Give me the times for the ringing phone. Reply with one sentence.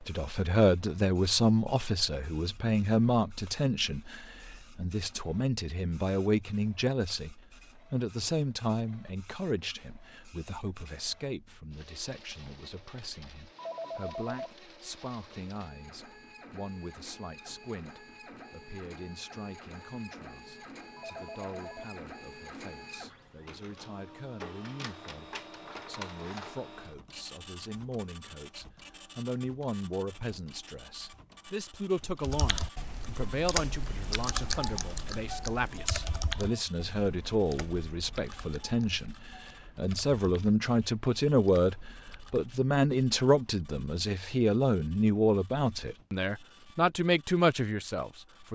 You can hear the ringing phone from 13.6 to 14.6 s, from 20.9 to 21.9 s and from 35.7 to 36.5 s.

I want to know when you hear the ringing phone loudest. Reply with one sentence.
The volume of the ringing phone peaks at 14 seconds.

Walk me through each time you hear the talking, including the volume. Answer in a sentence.
You can hear the talking from 0.0 to 48.4 s, getting quieter then louder.